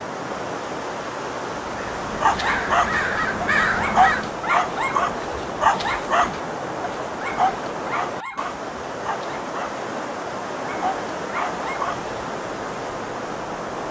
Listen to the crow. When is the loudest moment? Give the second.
4 s.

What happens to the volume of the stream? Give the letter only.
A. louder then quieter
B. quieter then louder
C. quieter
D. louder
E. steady
E.